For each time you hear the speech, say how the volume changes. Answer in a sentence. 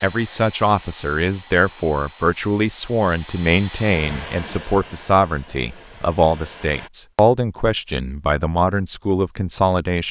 The speech can be heard from 0.0 to 10.0 s, at a steady volume.